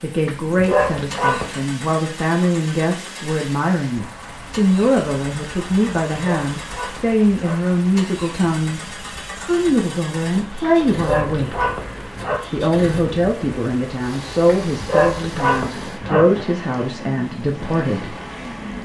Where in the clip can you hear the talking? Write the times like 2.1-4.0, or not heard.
0.0-11.7, 12.5-18.1.